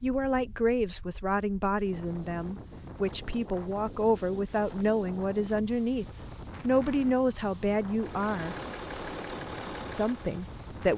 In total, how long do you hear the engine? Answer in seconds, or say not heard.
3 s.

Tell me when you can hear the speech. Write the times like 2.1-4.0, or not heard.
0.0-8.6, 9.9-10.9.